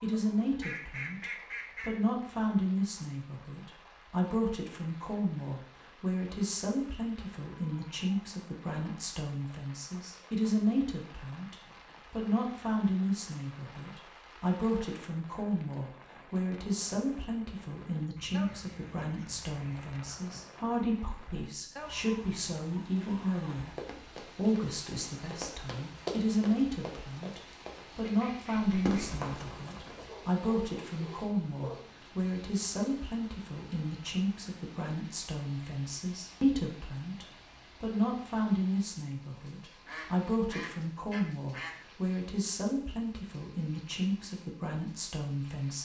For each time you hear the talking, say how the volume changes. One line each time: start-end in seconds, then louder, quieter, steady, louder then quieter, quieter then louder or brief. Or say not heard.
0.0-45.8 steady.